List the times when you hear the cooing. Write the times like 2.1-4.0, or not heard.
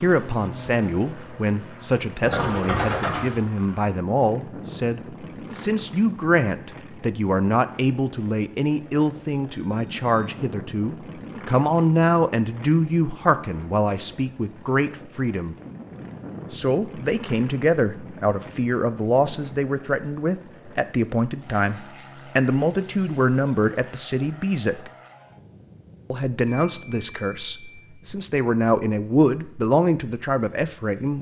2.1-3.5.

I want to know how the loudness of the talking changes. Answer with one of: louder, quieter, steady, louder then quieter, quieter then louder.
steady.